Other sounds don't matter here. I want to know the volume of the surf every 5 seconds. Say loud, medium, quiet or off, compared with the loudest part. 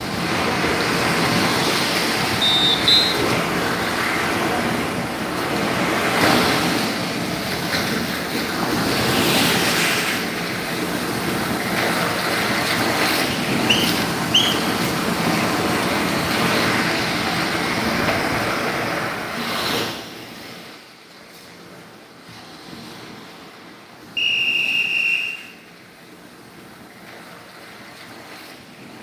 loud, loud, loud, loud, quiet, quiet.